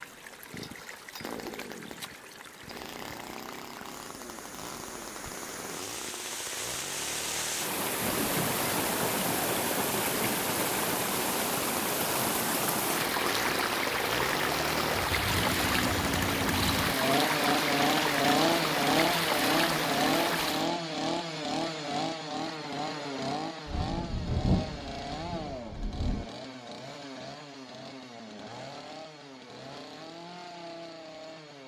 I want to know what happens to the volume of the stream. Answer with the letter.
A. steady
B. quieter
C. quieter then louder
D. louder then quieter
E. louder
E.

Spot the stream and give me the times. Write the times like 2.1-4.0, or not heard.
0.0-20.7.